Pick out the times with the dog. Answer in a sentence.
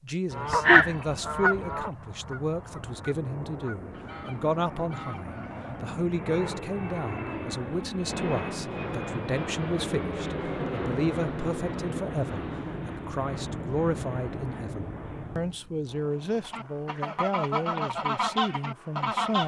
The dog can't be heard in this clip.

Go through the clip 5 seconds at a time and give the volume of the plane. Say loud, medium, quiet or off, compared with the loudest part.
medium, loud, loud, quiet.